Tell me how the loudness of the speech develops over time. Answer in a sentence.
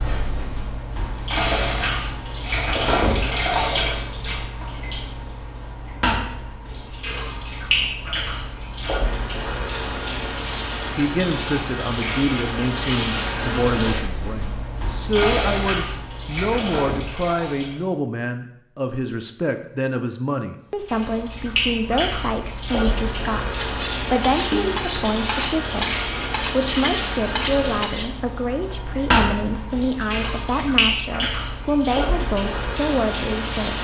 The loudness of the speech stays about the same.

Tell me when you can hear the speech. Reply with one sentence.
The speech can be heard from 10.9 to 33.7 s.